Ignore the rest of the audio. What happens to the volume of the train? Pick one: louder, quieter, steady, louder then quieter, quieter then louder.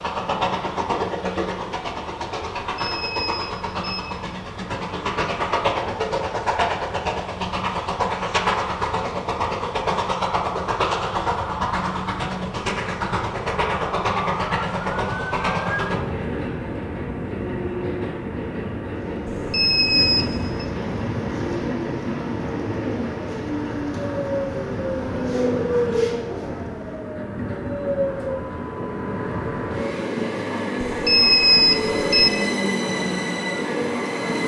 steady.